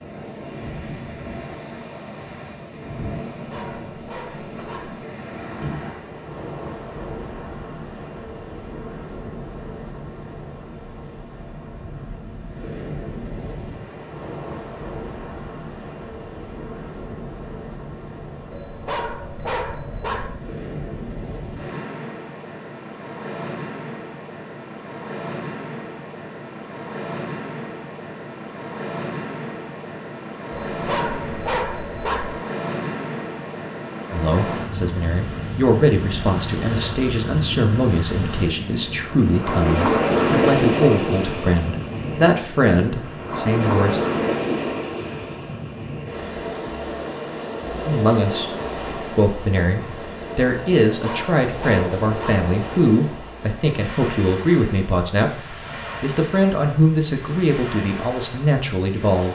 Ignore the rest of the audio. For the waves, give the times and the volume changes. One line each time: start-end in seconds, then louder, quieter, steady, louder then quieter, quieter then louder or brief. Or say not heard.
0.0-59.3 louder then quieter.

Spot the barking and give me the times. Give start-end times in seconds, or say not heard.
3.3-5.0, 18.5-20.4, 30.5-32.4, 50.9-52.5.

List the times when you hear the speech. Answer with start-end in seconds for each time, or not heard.
34.1-44.0, 47.8-59.3.